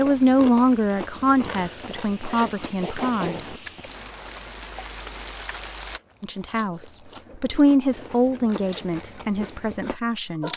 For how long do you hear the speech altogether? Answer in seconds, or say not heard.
8 s.